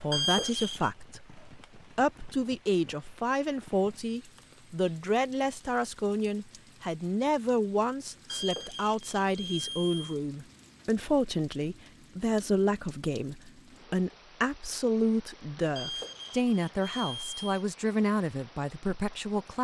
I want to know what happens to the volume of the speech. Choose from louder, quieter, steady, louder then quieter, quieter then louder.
steady.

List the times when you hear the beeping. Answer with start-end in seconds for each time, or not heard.
0.1-0.9, 8.2-10.2, 15.8-17.6.